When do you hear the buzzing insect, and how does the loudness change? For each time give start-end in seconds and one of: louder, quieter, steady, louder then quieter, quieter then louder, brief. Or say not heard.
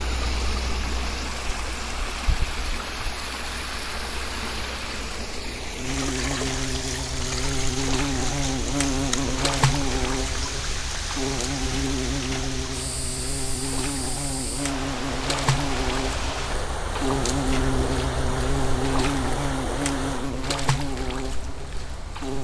0.0-22.3 louder.